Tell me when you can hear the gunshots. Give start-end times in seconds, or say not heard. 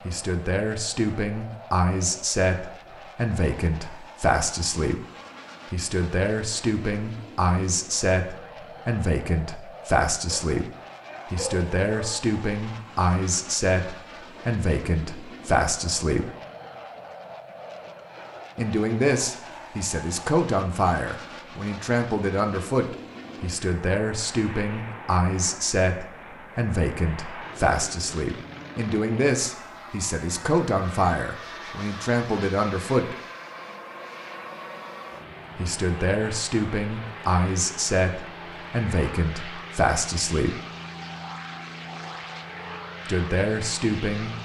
not heard.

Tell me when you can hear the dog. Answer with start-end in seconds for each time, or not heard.
10.3-12.2.